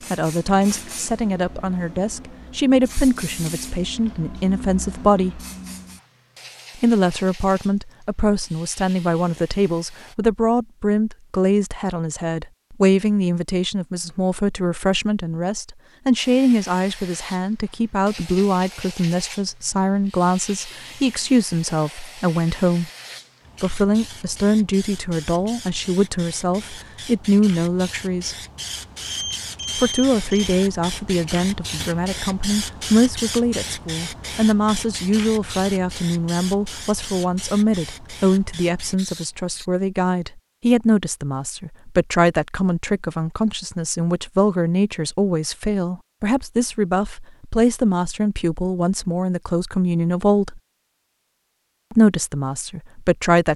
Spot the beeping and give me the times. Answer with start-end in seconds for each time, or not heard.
28.6-30.6.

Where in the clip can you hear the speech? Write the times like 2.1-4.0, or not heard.
0.1-5.5, 6.8-22.9, 23.6-28.4, 29.8-50.6, 51.9-53.5.